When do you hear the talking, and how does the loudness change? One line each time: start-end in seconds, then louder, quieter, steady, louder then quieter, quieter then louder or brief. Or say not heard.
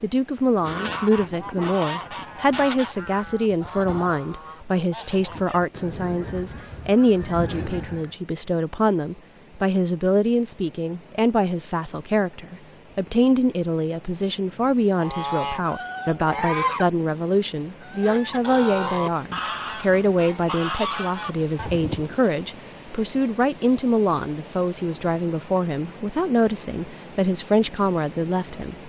0.0-28.8 steady.